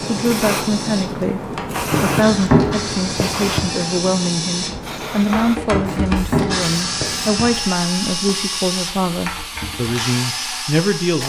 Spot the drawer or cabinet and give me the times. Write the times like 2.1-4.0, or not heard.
1.9-3.7, 5.7-7.5.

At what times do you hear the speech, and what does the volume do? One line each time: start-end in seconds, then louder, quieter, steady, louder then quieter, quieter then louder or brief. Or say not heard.
0.0-11.2 steady.